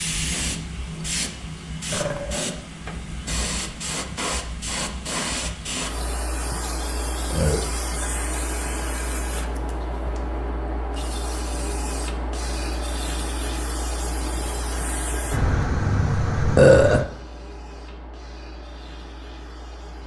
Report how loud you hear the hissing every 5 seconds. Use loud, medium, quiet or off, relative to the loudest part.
loud, loud, loud, medium.